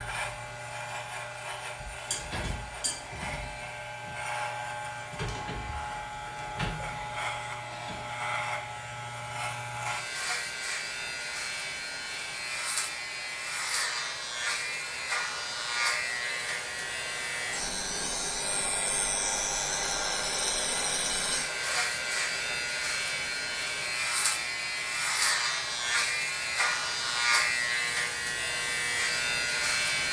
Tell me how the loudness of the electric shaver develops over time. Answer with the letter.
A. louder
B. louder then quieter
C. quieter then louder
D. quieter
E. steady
A.